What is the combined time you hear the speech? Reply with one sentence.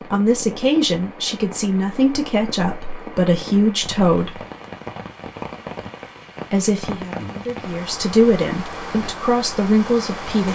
You can hear the speech for 8 seconds altogether.